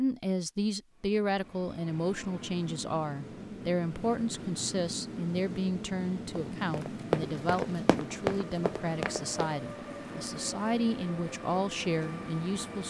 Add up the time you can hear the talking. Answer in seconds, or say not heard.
13 s.